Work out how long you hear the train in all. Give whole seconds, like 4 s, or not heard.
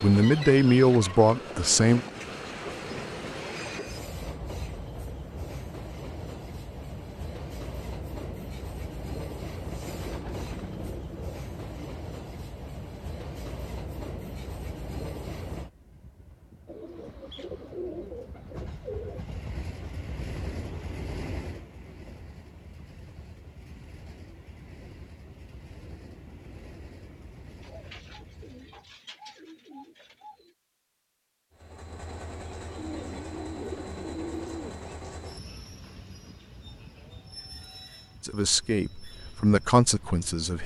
38 s.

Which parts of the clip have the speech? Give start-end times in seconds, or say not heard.
0.0-2.0, 38.2-40.6.